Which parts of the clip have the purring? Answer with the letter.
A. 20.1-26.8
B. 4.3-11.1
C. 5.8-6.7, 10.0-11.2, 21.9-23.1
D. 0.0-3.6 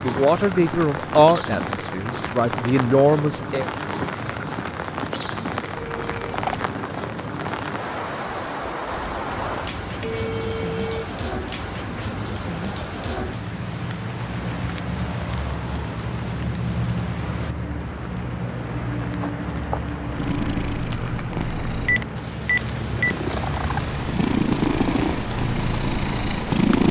A.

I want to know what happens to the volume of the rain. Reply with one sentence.
The loudness of the rain stays about the same.